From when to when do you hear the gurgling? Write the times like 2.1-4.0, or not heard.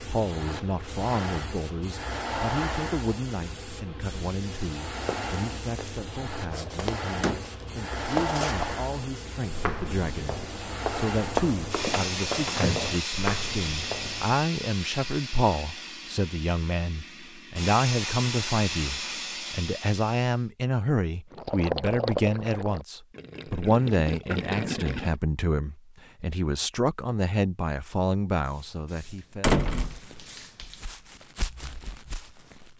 21.3-25.1.